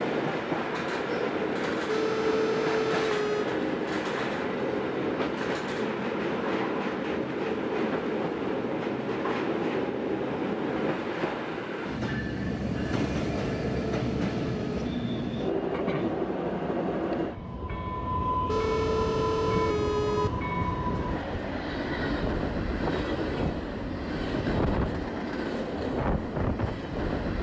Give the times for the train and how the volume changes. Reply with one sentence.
The train can be heard from 0.0 to 27.3 s, at a steady volume.